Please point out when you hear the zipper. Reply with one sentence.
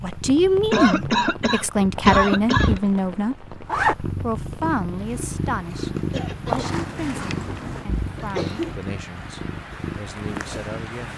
The zipper can be heard from 1.9 to 4.0 s and from 6.5 to 7.8 s.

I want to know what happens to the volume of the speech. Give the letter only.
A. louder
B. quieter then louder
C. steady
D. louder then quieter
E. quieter
E.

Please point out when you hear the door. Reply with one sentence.
You can't hear the door here.